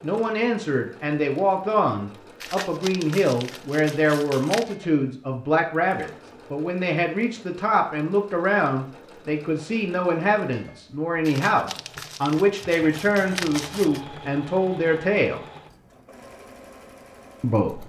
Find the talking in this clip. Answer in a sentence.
The talking can be heard from 0.0 to 15.4 s and from 17.4 to 17.8 s.